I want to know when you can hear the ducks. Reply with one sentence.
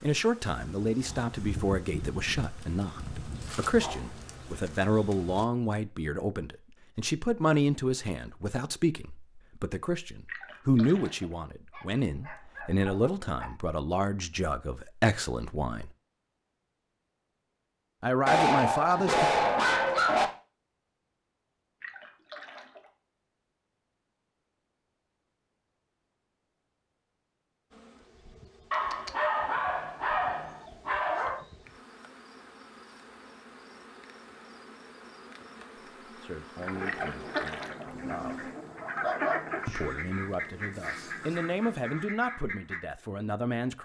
You can hear the ducks from 36.6 to 42.8 s.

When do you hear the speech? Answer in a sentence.
You can hear the speech from 0.0 to 15.9 s, from 18.0 to 19.3 s, from 36.1 to 38.5 s and from 39.6 to 43.7 s.